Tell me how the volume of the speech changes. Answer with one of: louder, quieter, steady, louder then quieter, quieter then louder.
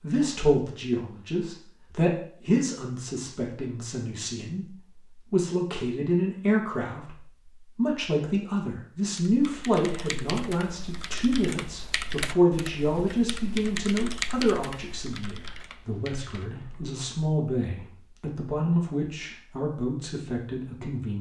steady.